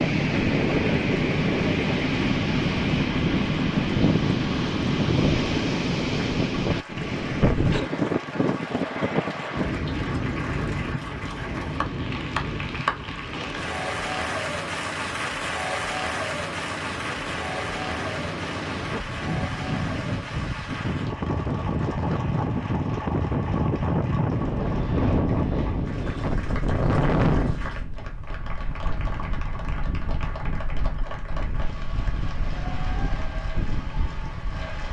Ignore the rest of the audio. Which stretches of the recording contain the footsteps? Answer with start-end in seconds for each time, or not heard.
not heard.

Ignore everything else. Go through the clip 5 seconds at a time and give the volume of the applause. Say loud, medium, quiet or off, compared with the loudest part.
medium, medium, loud, loud, medium, medium, medium.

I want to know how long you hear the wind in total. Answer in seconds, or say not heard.
35 s.